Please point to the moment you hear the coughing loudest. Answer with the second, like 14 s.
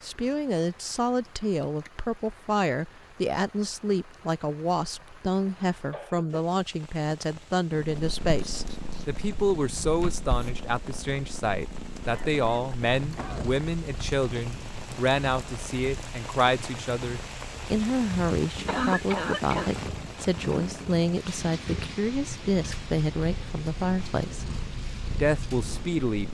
19 s.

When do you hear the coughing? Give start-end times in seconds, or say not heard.
5.7-6.5, 12.1-13.5, 18.6-19.7.